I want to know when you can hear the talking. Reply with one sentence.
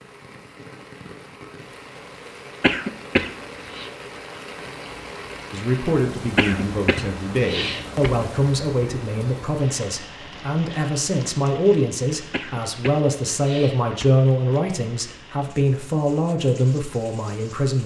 The talking can be heard from 5.5 to 17.8 s.